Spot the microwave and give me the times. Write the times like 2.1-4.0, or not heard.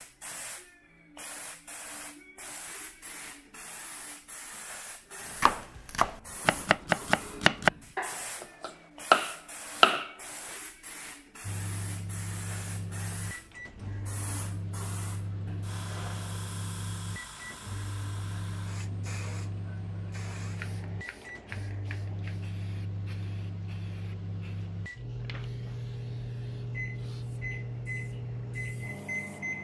11.4-29.5.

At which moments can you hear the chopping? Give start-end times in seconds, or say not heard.
5.4-10.1.